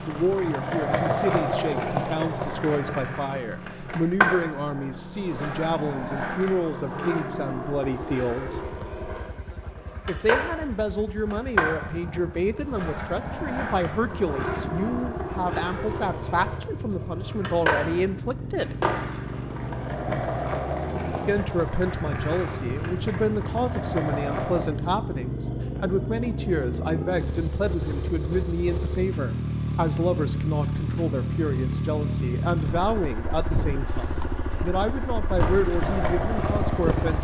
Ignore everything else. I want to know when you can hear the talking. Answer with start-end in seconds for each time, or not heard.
0.0-8.6, 10.1-18.8, 21.2-37.2.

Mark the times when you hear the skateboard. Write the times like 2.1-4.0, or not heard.
0.0-24.6, 35.4-37.2.